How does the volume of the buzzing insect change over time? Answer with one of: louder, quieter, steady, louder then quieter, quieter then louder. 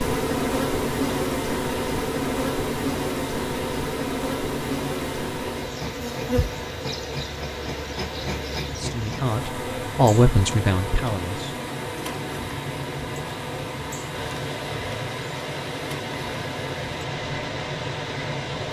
quieter.